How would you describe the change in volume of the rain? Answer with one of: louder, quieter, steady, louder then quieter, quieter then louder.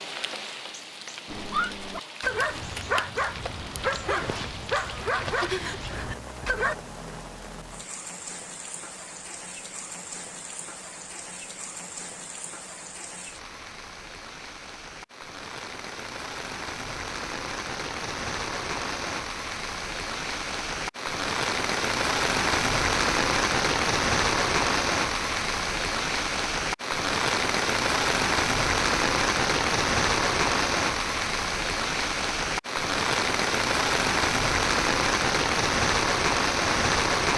louder.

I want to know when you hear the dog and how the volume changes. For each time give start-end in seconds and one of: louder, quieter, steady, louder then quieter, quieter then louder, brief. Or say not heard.
1.2-6.8 steady.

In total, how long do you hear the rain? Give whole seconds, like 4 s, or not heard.
37 s.